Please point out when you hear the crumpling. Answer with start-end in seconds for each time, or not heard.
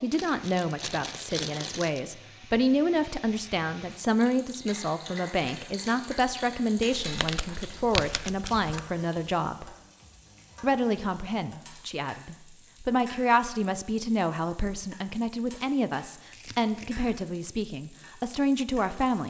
0.1-2.0, 7.0-8.8, 16.3-17.1.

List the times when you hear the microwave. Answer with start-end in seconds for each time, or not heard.
not heard.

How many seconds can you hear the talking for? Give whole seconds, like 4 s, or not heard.
18 s.